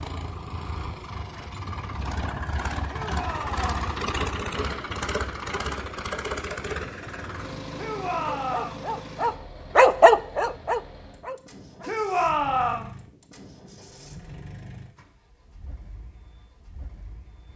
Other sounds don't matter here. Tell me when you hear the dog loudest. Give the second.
10 s.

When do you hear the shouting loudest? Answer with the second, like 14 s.
12 s.